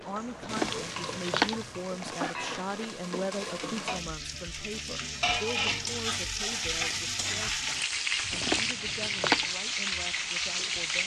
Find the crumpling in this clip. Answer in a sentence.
You can hear the crumpling from 0.4 to 2.9 s and from 8.3 to 9.4 s.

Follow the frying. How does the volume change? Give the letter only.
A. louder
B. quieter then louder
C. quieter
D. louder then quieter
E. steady
A.